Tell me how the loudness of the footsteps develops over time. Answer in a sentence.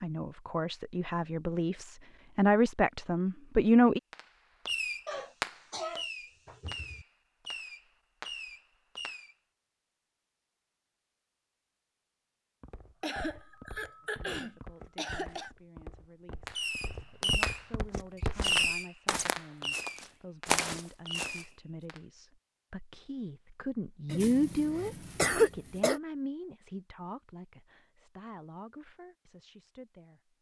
The volume of the footsteps goes up.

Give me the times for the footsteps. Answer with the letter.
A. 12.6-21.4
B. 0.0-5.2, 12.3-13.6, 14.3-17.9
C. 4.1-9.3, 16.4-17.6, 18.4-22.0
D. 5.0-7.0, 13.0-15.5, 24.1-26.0
A.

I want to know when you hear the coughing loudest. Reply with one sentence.
The loudest moment of the coughing is at 25 seconds.